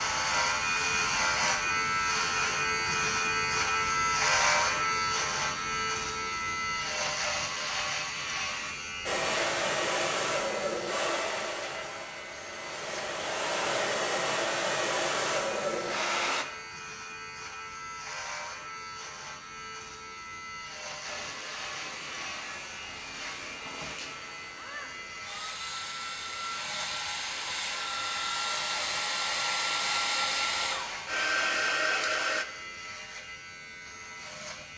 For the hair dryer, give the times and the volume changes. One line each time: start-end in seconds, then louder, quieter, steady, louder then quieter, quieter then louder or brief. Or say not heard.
9.1-16.4 quieter then louder
21.1-32.5 louder.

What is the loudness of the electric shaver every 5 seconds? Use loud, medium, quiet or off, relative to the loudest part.
loud, medium, quiet, quiet, quiet, quiet, quiet.